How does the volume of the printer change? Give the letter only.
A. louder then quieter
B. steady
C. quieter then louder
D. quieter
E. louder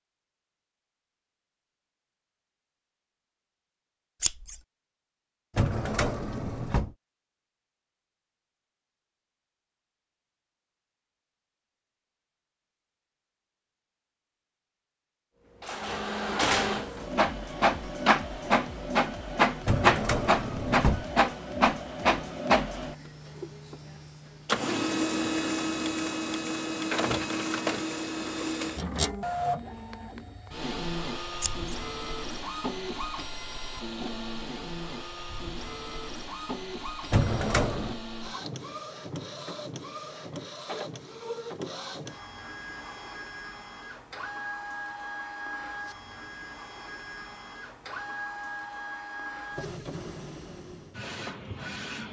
D.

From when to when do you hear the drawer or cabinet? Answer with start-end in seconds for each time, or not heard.
5.5-6.9, 19.6-21.1, 37.1-38.0.